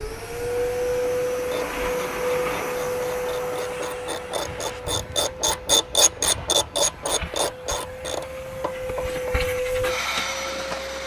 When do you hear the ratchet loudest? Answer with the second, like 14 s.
6 s.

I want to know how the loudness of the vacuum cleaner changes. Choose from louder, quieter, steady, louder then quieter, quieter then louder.
quieter then louder.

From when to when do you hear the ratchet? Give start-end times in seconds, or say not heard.
1.3-9.8.